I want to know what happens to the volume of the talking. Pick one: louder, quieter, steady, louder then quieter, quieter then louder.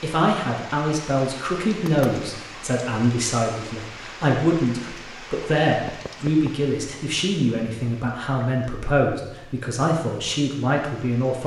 steady.